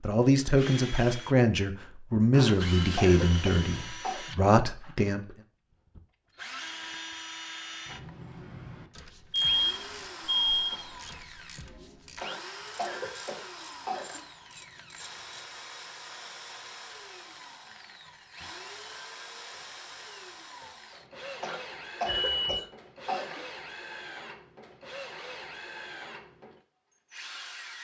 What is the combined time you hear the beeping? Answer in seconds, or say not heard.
4 s.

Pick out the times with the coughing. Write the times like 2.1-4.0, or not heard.
2.4-4.2, 12.2-14.2, 21.4-23.4.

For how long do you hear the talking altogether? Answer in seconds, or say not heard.
5 s.